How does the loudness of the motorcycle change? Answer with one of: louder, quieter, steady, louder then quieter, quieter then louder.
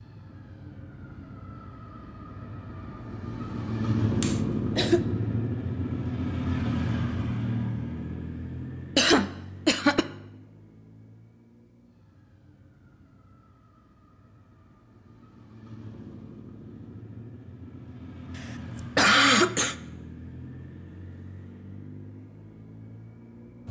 quieter then louder.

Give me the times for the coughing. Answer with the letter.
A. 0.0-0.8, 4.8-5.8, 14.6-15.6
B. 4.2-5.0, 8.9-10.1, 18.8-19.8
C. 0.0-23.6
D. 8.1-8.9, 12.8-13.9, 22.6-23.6
B.